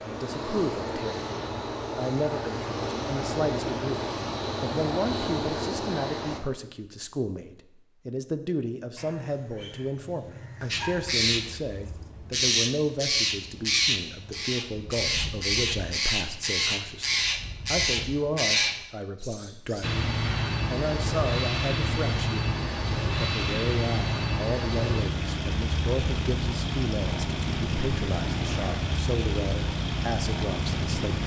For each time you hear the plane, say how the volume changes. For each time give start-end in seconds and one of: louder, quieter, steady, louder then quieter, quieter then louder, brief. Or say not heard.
0.0-6.4 steady
19.8-31.2 steady.